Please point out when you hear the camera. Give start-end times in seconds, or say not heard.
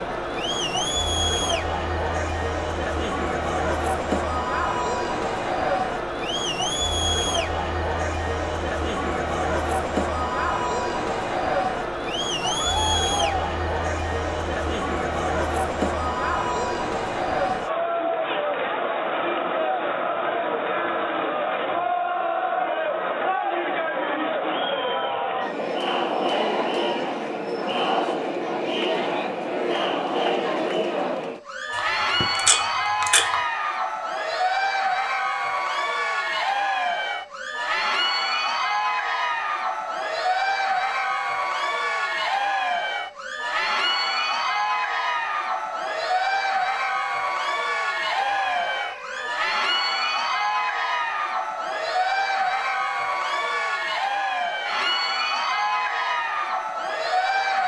31.7-33.4.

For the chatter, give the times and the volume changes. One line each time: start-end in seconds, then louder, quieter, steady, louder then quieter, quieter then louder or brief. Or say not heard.
0.0-57.6 steady.